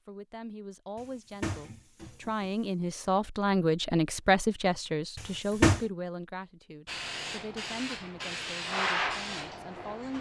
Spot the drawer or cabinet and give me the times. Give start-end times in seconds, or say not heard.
0.9-2.6, 5.2-5.8.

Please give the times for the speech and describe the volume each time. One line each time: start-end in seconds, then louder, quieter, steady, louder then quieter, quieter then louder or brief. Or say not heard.
0.1-10.1 louder then quieter.